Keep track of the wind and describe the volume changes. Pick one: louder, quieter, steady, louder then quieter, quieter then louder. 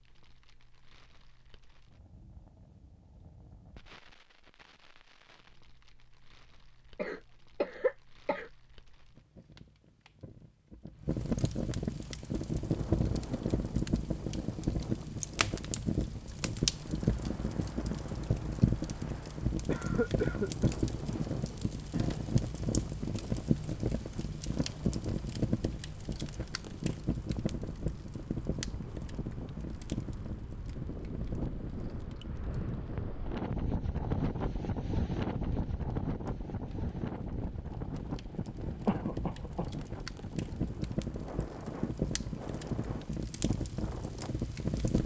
louder then quieter.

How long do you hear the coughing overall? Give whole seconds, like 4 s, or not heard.
4 s.